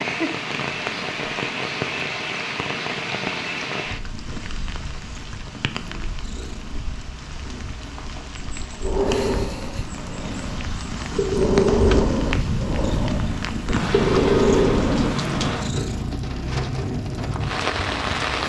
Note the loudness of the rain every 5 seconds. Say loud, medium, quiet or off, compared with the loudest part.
loud, medium, loud, loud.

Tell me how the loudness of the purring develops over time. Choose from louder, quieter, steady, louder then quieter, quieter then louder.
louder.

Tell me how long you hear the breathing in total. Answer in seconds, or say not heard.
7 s.